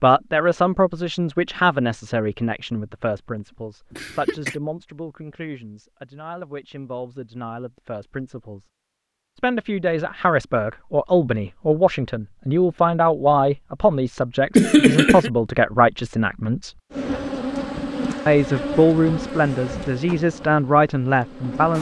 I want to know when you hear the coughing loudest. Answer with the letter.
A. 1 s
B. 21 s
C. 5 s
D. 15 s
D.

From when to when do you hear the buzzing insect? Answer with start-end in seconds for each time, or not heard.
16.9-21.7.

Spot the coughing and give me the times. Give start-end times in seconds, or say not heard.
3.9-4.5, 14.6-15.3.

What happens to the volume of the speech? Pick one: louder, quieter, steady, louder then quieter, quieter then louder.
quieter then louder.